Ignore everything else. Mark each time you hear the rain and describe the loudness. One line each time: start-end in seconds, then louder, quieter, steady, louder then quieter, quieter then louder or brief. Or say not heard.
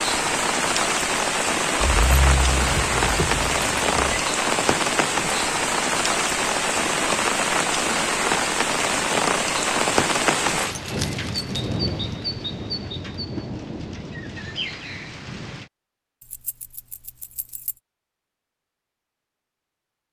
0.0-15.7 quieter.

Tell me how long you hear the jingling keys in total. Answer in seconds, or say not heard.
5 s.